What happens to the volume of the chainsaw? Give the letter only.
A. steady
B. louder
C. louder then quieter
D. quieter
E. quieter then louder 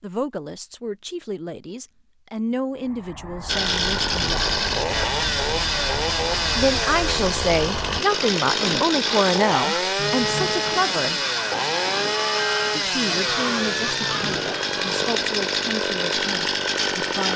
A.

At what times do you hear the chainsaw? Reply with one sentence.
The chainsaw can be heard from 3.5 to 17.3 s.